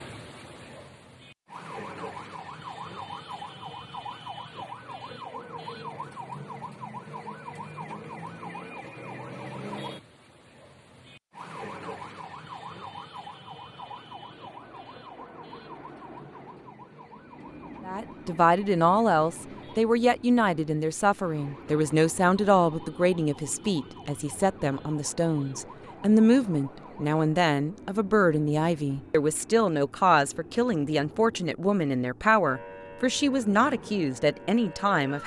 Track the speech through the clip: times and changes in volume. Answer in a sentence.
The speech can be heard from 17.9 to 35.2 s, at a steady volume.